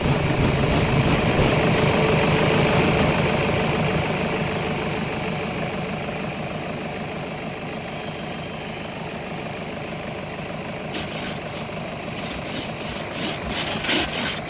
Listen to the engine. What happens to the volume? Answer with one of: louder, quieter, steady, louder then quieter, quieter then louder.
quieter.